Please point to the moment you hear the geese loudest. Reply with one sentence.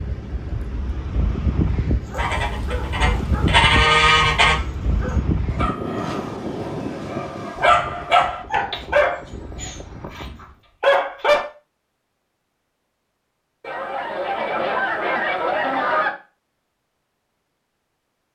The volume of the geese peaks at 4 seconds.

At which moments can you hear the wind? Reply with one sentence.
The wind can be heard from 0.0 to 10.6 s.